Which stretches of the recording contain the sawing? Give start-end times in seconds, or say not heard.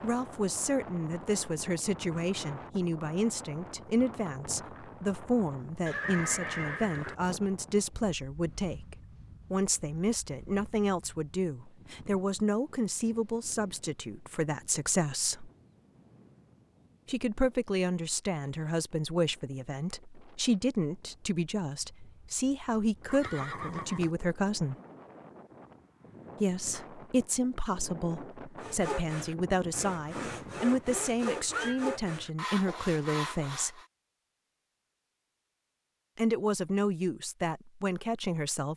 28.6-33.9.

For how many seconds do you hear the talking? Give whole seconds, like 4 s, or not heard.
33 s.